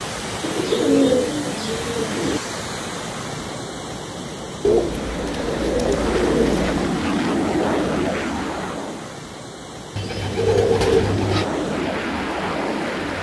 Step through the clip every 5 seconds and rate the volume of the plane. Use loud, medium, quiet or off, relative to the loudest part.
off, loud, loud.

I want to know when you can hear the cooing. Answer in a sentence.
The cooing can be heard from 0.4 to 2.4 s, from 4.6 to 6.9 s and from 9.9 to 11.4 s.